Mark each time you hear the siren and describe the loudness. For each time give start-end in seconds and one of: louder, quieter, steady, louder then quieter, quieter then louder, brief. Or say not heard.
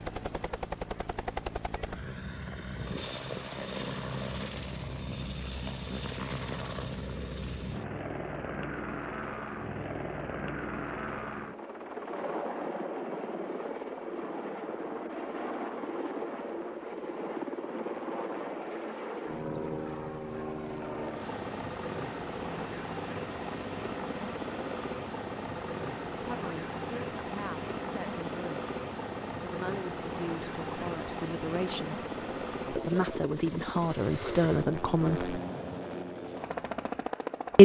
not heard.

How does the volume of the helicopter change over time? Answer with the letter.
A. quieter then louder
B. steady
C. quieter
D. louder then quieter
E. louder
B.